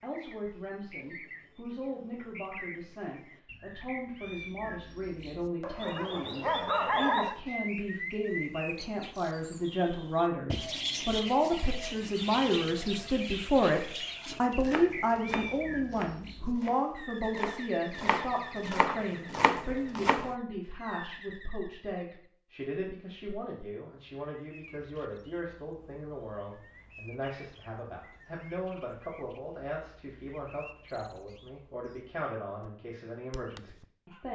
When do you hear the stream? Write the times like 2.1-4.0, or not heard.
not heard.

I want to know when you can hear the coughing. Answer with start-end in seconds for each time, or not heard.
not heard.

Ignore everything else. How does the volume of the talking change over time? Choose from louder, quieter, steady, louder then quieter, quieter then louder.
louder then quieter.